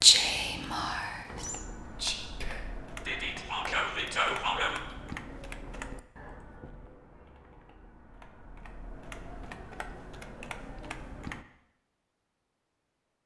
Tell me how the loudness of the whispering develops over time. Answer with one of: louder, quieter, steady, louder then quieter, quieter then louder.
quieter then louder.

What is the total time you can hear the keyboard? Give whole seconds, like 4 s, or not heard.
10 s.